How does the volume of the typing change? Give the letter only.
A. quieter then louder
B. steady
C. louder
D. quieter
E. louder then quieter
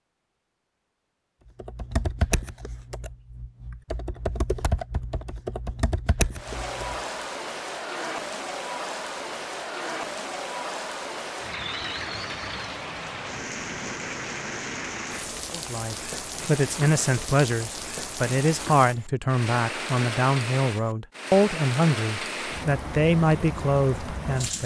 A.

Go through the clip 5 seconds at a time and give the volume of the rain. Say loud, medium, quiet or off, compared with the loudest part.
off, loud, loud, loud, loud.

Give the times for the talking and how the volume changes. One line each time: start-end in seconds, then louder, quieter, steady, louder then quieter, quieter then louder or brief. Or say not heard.
15.5-24.6 steady.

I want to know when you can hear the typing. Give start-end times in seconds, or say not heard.
1.6-7.0.